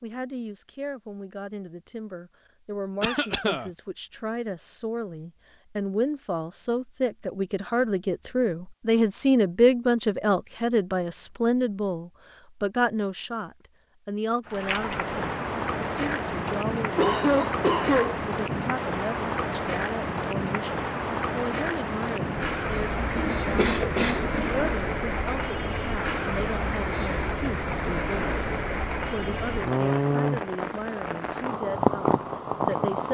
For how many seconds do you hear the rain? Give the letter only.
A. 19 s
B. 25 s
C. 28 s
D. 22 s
A.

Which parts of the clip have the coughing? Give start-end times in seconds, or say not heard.
3.0-3.7, 16.9-18.2, 23.1-24.6.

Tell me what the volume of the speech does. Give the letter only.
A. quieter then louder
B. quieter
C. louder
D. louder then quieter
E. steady
D.